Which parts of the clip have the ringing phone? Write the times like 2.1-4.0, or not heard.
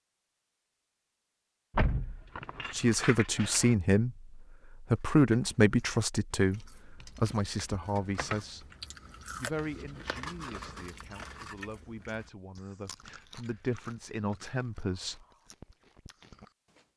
not heard.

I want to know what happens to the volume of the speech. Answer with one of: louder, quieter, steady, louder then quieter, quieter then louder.
quieter then louder.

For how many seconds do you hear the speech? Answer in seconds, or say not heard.
12 s.